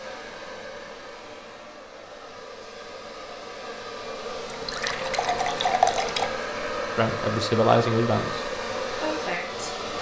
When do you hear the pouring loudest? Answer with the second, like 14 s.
6 s.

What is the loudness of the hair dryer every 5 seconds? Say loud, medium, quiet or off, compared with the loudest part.
medium, loud.